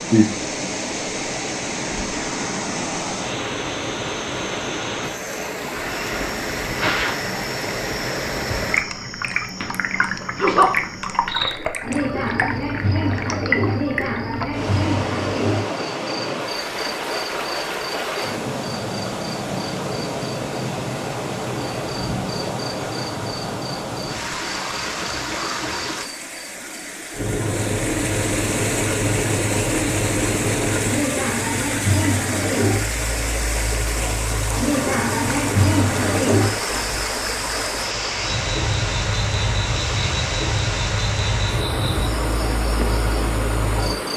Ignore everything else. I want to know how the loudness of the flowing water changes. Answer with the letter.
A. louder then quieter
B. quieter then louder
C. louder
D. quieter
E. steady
E.